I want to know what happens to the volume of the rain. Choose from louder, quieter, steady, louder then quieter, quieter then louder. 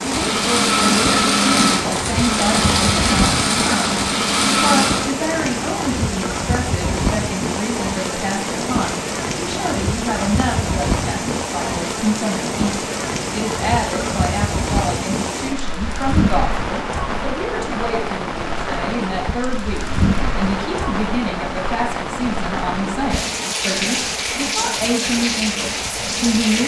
steady.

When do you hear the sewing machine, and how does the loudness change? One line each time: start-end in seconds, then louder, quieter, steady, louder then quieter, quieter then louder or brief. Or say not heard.
0.0-5.1 steady.